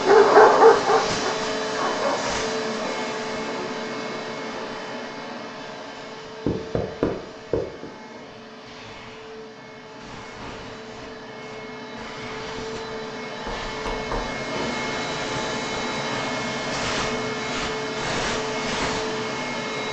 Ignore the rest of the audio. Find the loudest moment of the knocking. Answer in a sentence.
The volume of the knocking peaks at 7 seconds.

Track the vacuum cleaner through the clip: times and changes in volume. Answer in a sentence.
You can hear the vacuum cleaner from 0.0 to 19.8 s, getting quieter then louder.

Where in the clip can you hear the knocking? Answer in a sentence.
You can hear the knocking from 6.5 to 7.8 s and from 13.4 to 14.3 s.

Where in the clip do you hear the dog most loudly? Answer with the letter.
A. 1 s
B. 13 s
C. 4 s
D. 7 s
A.